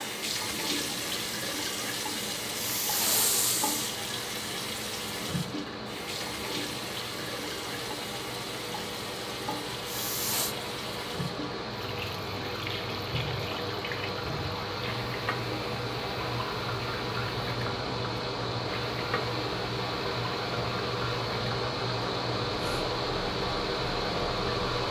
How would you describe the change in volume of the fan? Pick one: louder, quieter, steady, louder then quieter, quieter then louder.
louder.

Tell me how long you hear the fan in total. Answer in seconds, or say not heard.
25 s.